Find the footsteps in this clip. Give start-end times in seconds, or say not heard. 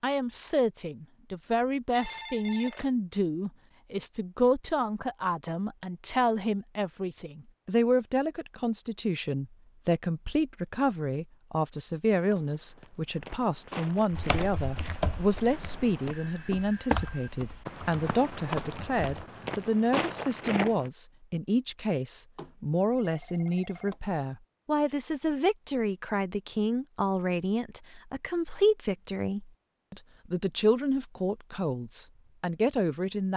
12.2-20.9.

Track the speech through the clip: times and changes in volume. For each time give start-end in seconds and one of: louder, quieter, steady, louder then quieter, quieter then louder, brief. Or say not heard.
0.0-33.3 steady.